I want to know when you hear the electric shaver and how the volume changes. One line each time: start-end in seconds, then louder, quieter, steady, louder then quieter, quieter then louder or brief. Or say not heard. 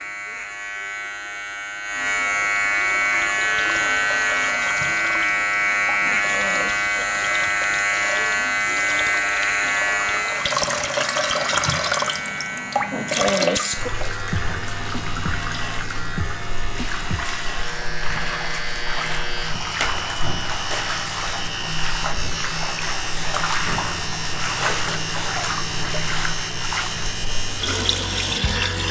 0.0-28.8 quieter.